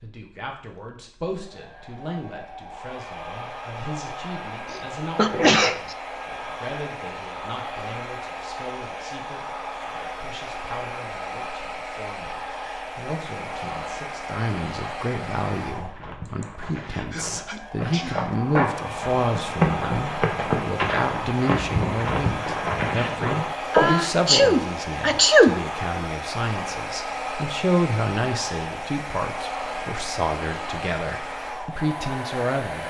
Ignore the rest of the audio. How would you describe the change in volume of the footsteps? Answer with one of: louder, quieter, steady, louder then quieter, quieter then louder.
louder.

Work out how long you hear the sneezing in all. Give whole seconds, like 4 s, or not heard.
5 s.